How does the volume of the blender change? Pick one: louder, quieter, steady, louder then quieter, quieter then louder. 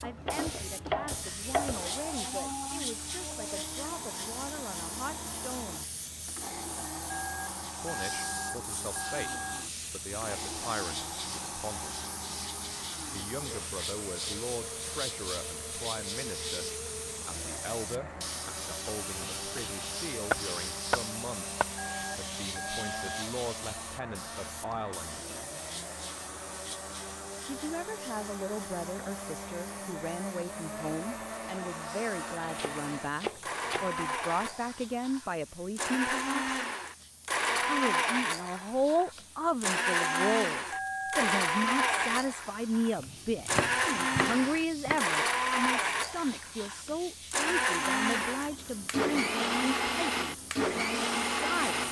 louder.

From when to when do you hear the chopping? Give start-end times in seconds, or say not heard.
0.2-1.9, 19.4-21.6, 32.4-33.9, 43.0-45.0.